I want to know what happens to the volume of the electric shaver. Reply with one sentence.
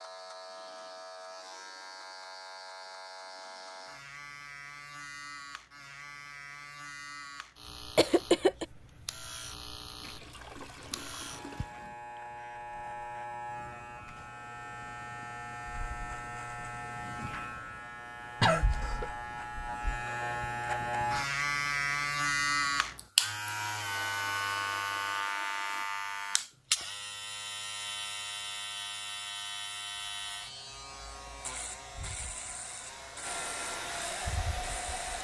The volume of the electric shaver goes up, then down.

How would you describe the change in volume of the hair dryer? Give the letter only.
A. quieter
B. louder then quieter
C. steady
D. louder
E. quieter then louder
D.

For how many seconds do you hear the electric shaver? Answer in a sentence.
The electric shaver can be heard for 35 seconds in total.